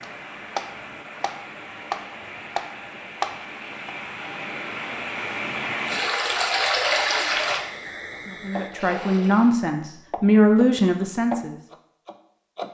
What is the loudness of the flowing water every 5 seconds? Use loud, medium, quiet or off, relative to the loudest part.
medium, loud, off.